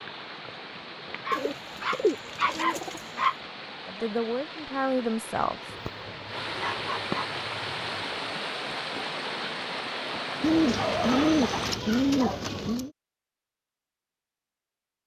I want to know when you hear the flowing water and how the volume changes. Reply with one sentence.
You can hear the flowing water from 0.0 to 11.8 s, getting louder.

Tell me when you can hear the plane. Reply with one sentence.
You can't hear the plane here.